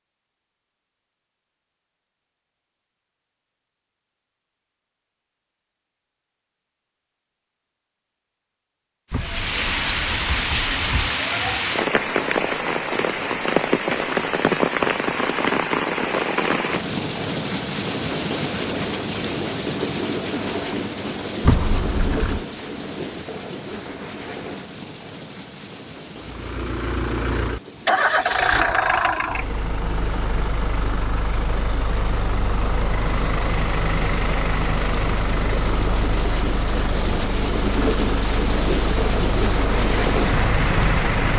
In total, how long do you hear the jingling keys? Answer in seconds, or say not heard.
3 s.